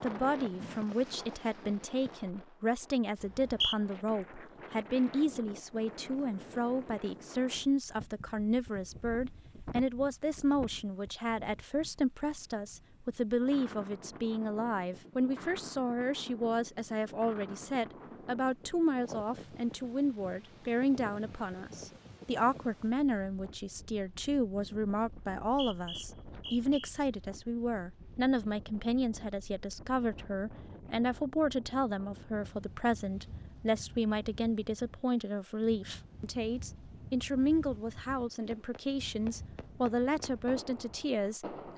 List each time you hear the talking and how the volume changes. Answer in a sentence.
You can hear the talking from 0.0 to 41.7 s, at a steady volume.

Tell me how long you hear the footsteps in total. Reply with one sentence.
The footsteps can't be heard in this clip.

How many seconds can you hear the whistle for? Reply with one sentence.
The whistle can be heard for 2 seconds in total.